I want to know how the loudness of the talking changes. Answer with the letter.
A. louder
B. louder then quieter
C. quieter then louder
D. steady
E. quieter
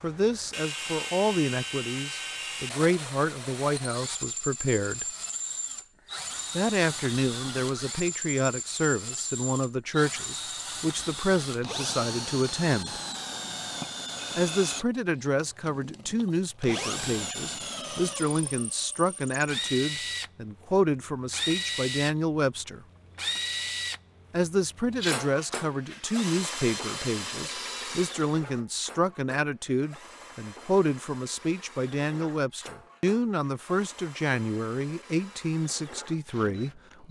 D.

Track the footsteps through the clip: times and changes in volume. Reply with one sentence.
The footsteps can't be heard in this clip.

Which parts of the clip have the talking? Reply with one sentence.
The talking can be heard from 0.0 to 5.0 s, from 6.5 to 13.0 s, from 14.3 to 22.9 s and from 24.3 to 37.0 s.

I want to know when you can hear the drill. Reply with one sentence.
You can hear the drill from 0.0 to 37.0 s.